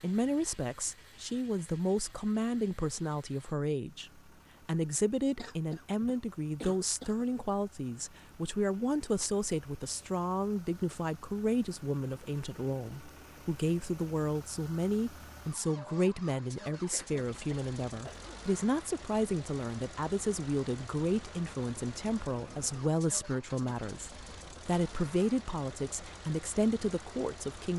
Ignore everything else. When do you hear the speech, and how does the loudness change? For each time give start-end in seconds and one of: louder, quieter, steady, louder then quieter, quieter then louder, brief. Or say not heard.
0.0-27.7 steady.